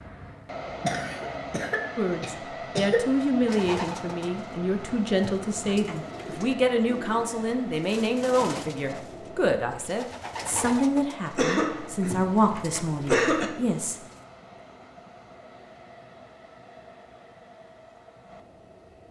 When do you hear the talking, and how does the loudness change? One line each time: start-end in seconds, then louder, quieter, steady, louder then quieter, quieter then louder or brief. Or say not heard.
1.9-13.9 steady.